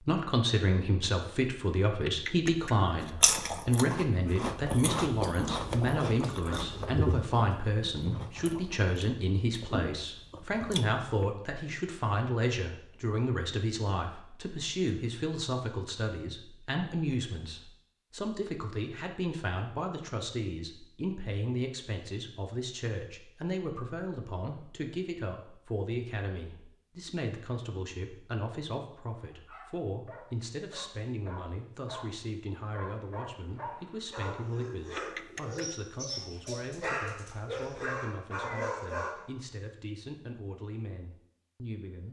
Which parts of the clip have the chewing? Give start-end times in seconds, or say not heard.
2.8-11.1.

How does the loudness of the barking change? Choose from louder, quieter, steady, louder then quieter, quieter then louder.
louder.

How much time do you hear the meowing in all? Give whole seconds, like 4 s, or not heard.
2 s.